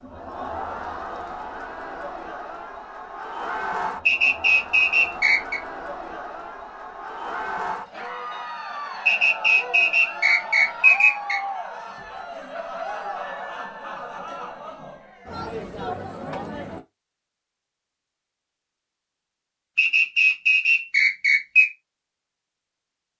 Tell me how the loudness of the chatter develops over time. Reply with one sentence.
The volume of the chatter stays about the same.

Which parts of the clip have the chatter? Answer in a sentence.
You can hear the chatter from 0.0 to 16.9 s.